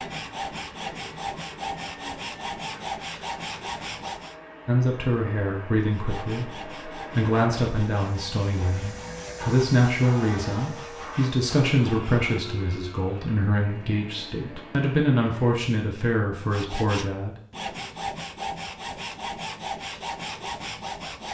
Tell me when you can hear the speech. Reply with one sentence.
You can hear the speech from 4.7 to 17.4 s.